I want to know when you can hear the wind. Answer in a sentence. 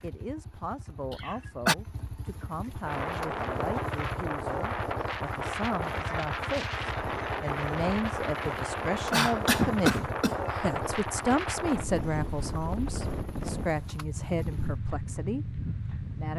The wind can be heard from 2.8 to 16.3 s.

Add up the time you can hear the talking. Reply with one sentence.
The talking can be heard for 16 seconds in total.